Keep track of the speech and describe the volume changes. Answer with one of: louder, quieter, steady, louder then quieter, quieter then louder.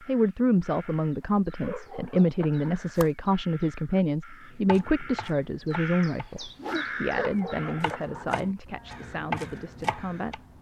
quieter.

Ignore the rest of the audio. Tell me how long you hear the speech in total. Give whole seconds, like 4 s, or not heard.
10 s.